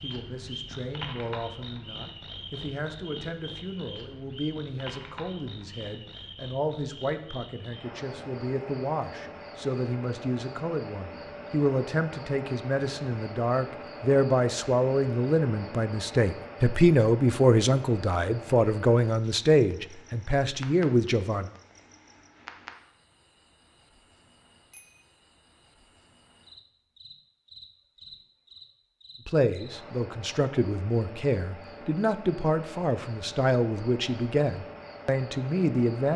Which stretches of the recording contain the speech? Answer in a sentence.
The speech can be heard from 0.0 to 21.5 s and from 29.2 to 36.1 s.